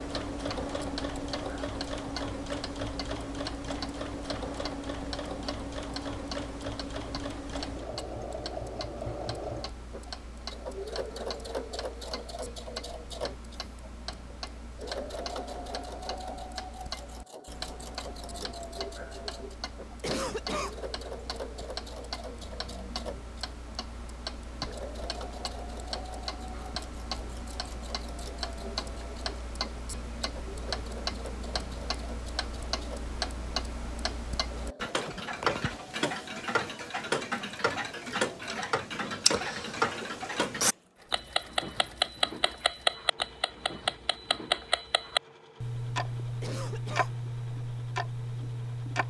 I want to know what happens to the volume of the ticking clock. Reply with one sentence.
The loudness of the ticking clock goes up.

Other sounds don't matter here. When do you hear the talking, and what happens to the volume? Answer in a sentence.
The talking can't be heard in this clip.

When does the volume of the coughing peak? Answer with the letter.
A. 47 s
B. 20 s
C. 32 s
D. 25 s
B.